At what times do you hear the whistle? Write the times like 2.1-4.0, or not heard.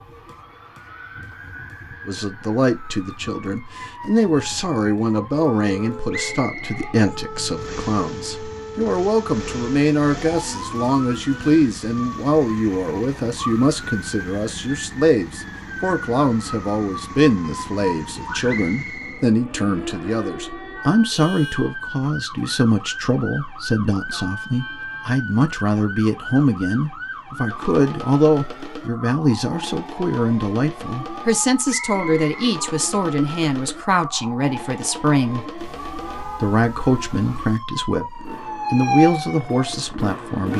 6.1-7.0, 18.4-19.2, 31.6-32.3.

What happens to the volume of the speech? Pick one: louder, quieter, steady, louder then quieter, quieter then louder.
steady.